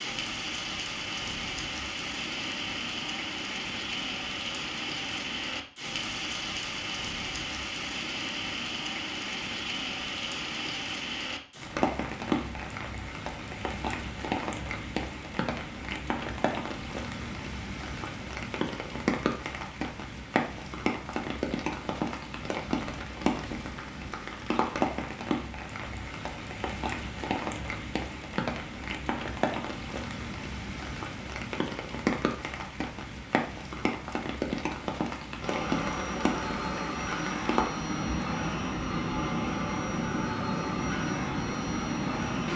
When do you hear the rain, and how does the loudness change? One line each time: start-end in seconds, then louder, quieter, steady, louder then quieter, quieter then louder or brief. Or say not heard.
0.0-42.5 steady.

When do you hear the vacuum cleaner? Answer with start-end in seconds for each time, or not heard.
35.4-42.5.